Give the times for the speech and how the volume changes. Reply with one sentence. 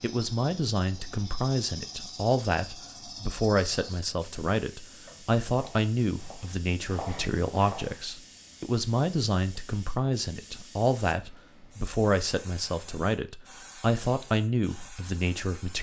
The speech can be heard from 0.0 to 15.7 s, at a steady volume.